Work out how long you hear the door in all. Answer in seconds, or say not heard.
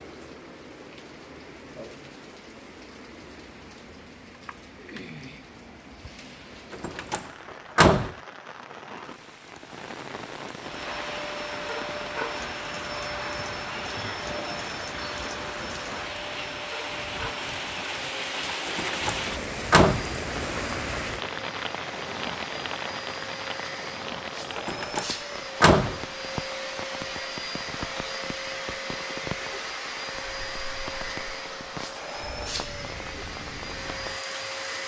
5 s.